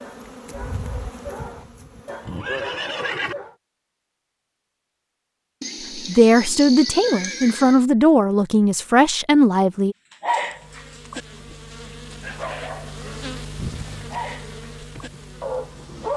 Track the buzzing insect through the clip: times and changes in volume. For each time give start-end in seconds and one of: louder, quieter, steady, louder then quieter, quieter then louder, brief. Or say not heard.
0.0-2.4 brief
10.4-16.1 louder then quieter.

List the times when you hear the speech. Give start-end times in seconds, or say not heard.
6.0-9.9.